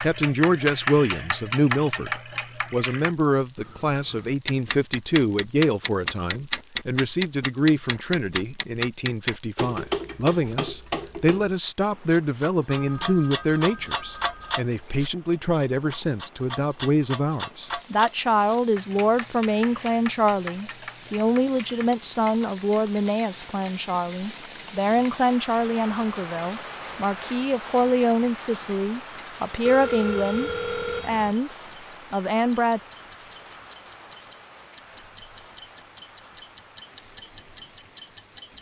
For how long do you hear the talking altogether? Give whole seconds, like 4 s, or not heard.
32 s.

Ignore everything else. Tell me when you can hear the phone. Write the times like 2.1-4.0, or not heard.
12.7-14.6, 29.6-31.4.